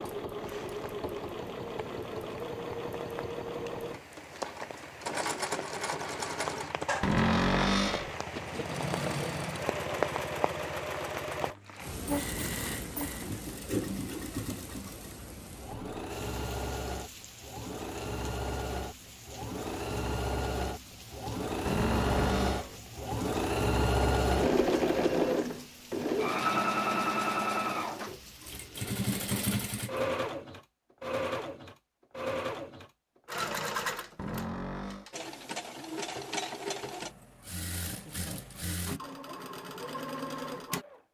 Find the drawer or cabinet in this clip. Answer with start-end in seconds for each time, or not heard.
7.0-8.2, 21.6-22.8, 34.1-35.1.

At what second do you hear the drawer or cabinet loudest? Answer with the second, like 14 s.
7 s.